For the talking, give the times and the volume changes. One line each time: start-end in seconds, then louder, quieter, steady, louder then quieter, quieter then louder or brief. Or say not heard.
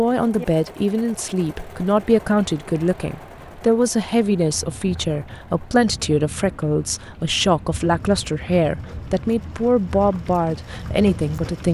0.0-11.6 steady.